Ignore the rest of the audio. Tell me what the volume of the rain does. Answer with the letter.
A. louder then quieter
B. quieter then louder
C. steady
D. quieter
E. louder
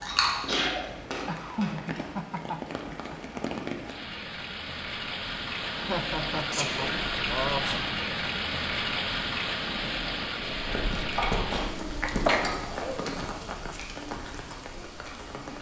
A.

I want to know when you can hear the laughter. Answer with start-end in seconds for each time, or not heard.
1.2-3.2, 5.7-7.8, 12.9-13.8.